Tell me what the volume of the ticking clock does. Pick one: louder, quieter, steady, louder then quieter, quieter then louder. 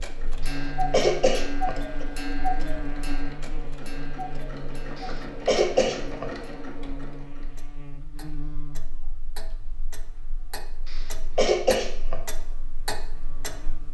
quieter then louder.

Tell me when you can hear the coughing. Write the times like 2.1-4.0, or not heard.
0.4-2.0, 5.0-6.3, 10.8-12.2.